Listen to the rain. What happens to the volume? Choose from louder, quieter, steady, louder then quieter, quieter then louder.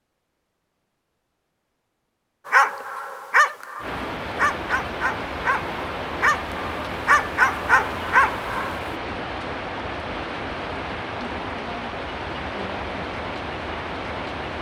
steady.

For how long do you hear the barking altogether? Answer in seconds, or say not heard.
6 s.